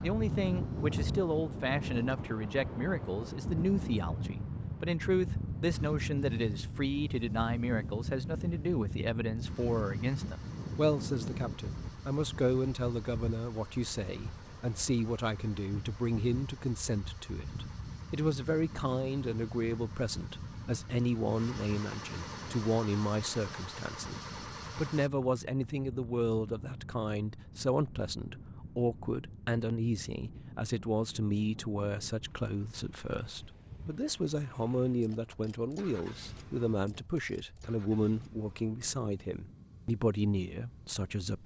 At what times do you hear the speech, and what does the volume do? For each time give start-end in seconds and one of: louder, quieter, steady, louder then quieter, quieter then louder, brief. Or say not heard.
0.0-41.4 steady.